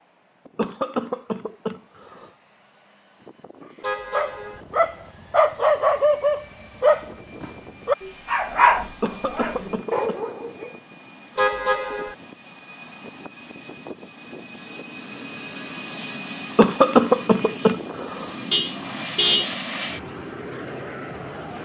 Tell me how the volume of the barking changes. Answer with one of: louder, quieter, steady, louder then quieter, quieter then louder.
quieter.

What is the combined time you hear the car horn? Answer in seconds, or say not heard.
3 s.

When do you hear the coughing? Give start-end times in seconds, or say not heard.
0.6-2.3, 9.0-10.2, 16.6-18.4.